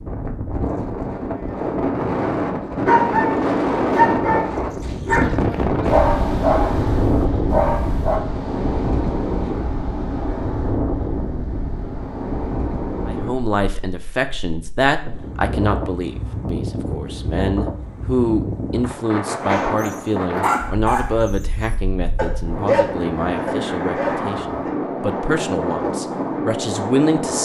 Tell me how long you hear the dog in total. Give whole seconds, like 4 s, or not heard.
11 s.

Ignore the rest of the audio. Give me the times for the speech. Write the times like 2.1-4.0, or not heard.
13.1-27.4.